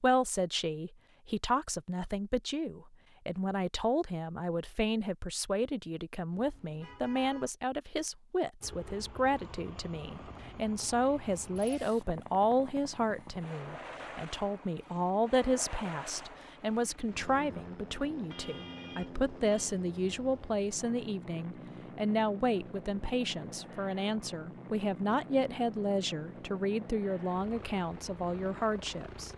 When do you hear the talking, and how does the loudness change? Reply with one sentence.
You can hear the talking from 0.0 to 29.3 s, at a steady volume.